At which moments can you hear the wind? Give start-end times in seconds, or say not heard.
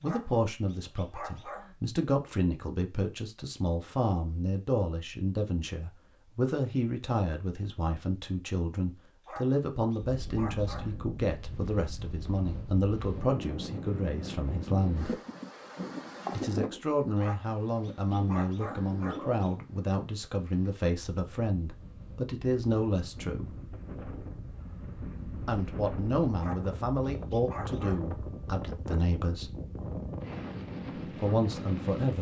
10.0-32.1.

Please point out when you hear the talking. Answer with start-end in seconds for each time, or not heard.
0.0-15.2, 16.3-23.5, 25.4-29.5, 31.1-32.1.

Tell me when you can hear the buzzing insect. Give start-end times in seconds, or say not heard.
not heard.